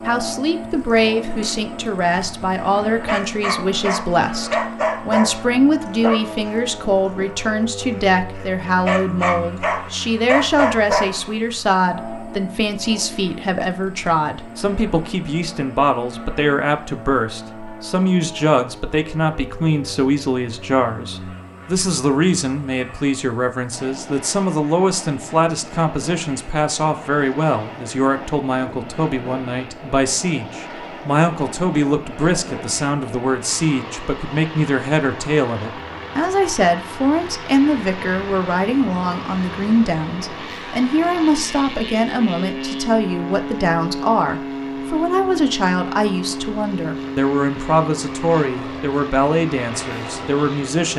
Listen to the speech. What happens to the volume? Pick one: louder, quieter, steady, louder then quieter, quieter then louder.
steady.